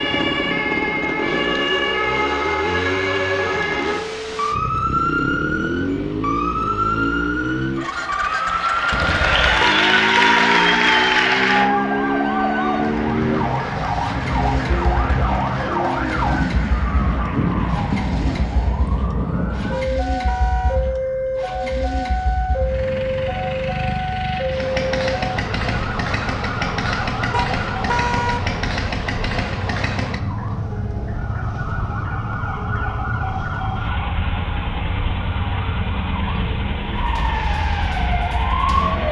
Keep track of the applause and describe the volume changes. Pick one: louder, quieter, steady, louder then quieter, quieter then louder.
quieter.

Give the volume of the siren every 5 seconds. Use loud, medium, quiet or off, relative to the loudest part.
loud, loud, loud, loud, loud, medium, medium, loud.